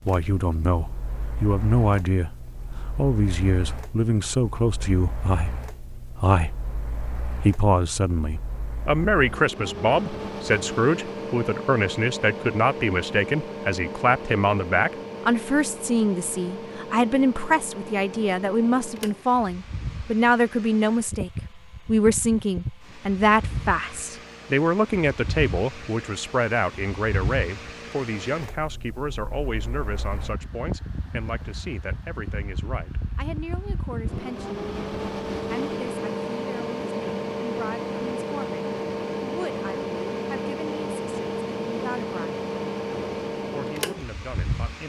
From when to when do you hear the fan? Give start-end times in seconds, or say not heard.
0.0-44.8.